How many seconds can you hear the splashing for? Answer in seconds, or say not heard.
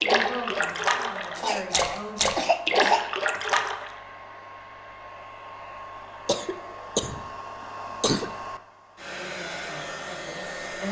4 s.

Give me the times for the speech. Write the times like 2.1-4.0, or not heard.
0.0-2.4, 9.1-10.8.